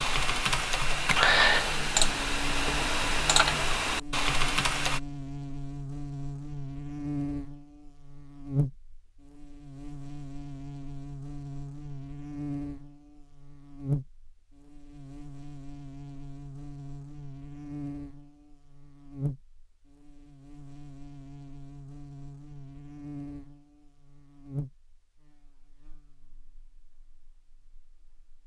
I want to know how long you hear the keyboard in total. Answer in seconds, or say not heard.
5 s.